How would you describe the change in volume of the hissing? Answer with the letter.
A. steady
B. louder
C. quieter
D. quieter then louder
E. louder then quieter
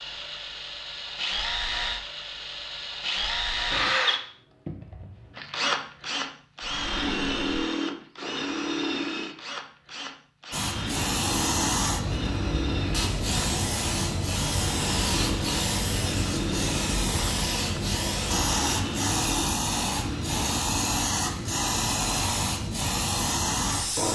A.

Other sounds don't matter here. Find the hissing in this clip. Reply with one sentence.
The hissing can be heard from 10.5 to 24.1 s.